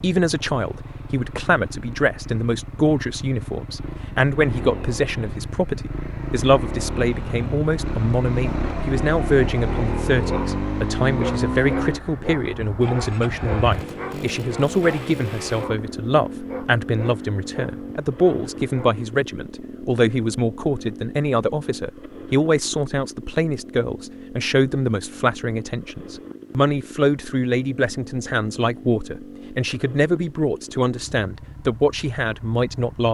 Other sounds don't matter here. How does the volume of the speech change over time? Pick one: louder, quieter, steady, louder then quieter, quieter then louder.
steady.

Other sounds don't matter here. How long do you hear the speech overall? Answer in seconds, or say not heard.
33 s.